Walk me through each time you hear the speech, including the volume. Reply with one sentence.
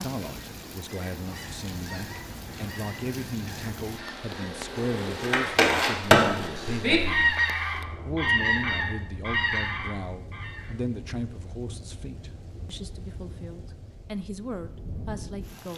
The speech can be heard from 0.0 to 15.7 s, at a steady volume.